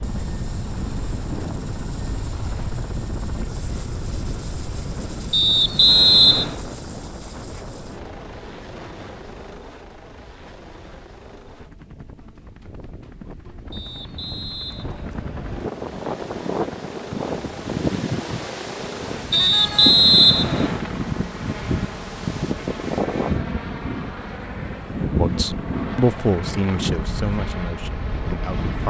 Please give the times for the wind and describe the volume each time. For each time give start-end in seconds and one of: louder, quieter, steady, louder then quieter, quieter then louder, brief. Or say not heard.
0.0-28.8 quieter then louder.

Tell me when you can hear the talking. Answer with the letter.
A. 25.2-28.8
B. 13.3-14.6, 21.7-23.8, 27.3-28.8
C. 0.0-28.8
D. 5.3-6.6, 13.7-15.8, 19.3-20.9
A.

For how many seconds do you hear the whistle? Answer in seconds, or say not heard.
5 s.